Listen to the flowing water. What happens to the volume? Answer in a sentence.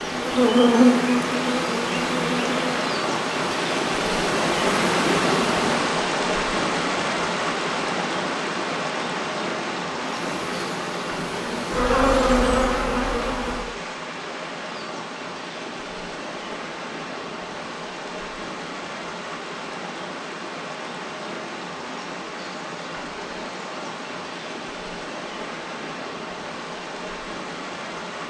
The loudness of the flowing water goes down.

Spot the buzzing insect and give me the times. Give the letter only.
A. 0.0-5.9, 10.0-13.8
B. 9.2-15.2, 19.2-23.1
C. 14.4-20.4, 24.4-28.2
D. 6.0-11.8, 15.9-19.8
A.